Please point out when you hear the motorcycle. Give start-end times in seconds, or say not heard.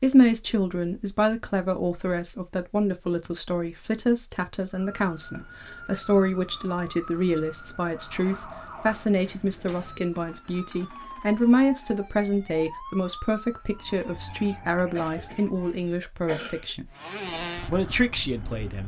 16.9-18.8.